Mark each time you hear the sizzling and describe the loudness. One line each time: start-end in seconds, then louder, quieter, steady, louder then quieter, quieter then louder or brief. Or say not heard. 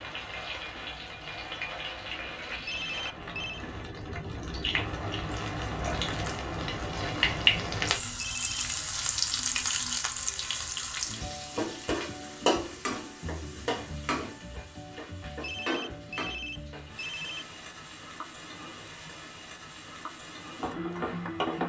0.0-21.6 louder then quieter.